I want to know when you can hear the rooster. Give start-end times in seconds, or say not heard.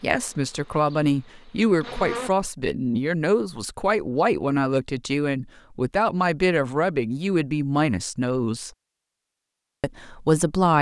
not heard.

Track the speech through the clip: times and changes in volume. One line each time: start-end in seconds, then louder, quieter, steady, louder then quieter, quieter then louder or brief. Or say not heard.
0.0-8.7 steady
9.8-10.7 brief.